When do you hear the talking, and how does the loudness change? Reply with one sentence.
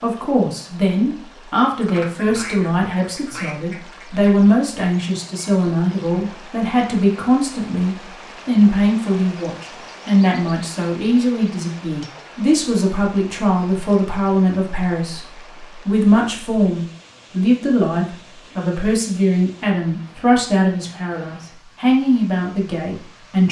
The talking can be heard from 0.0 to 15.2 s, at a steady volume; and from 15.8 to 23.4 s, at a steady volume.